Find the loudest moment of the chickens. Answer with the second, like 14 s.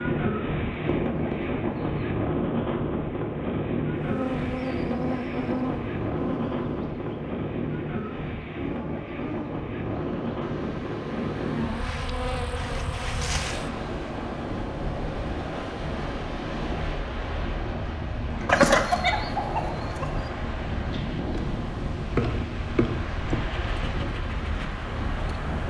19 s.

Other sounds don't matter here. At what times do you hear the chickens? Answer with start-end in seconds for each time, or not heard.
0.5-2.0, 18.4-20.2.